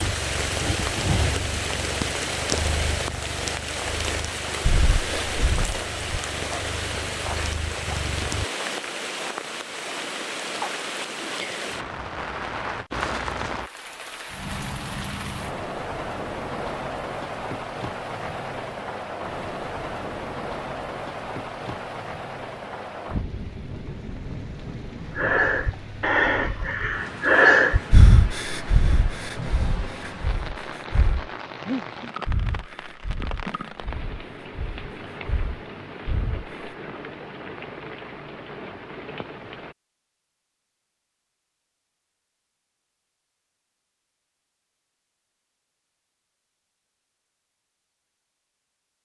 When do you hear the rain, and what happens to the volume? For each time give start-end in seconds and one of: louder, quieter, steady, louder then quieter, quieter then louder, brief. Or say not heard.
0.0-39.8 quieter.